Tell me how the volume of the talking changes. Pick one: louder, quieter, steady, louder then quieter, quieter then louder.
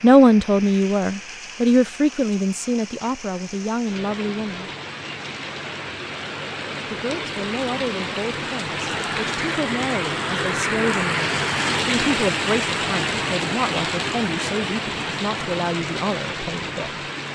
quieter.